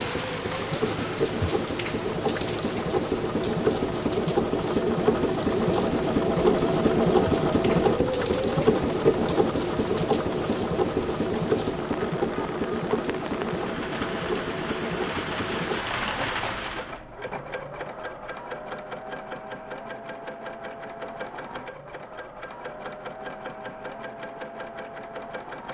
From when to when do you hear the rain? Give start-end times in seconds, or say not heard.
0.0-17.0.